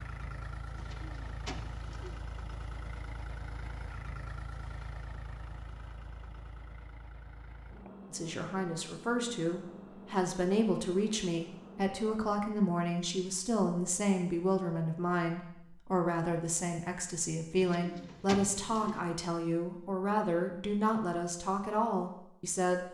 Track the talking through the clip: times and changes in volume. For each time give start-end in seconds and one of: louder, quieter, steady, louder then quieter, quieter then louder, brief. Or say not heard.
8.1-22.8 steady.